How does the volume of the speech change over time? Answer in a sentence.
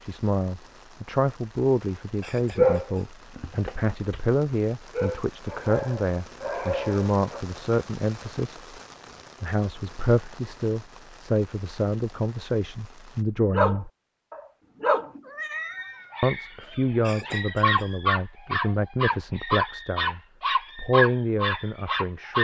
The loudness of the speech stays about the same.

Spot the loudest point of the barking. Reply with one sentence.
The volume of the barking peaks at 3 seconds.